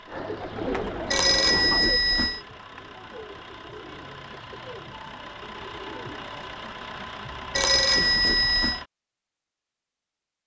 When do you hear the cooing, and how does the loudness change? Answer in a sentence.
You can hear the cooing from 0.1 to 6.4 s, getting quieter.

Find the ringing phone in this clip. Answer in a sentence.
The ringing phone can be heard from 1.1 to 2.4 s and from 7.5 to 8.8 s.